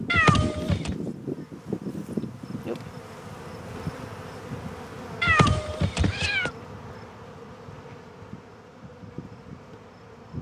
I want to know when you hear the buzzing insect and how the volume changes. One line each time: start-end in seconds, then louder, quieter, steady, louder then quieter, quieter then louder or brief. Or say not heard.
0.0-10.3 quieter.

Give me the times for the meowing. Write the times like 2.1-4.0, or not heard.
0.1-0.9, 5.2-6.5.